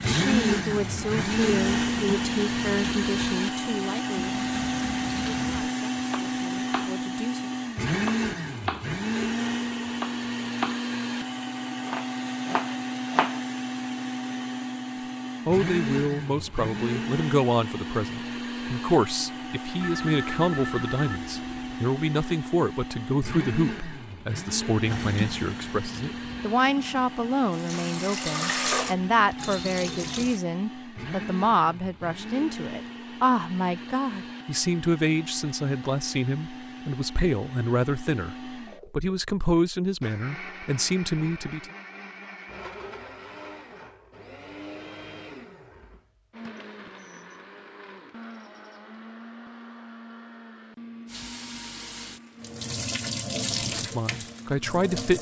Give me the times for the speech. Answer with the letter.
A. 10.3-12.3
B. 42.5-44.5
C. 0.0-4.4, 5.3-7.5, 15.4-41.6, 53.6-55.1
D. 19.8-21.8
C.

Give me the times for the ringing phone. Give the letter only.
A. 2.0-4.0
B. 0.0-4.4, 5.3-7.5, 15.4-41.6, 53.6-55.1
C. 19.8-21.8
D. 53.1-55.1
C.